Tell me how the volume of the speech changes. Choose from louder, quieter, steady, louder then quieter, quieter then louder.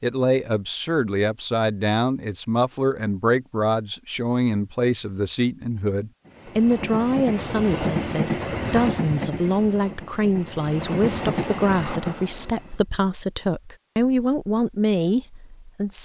steady.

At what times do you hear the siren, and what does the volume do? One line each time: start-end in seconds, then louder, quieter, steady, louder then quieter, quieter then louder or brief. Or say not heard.
not heard.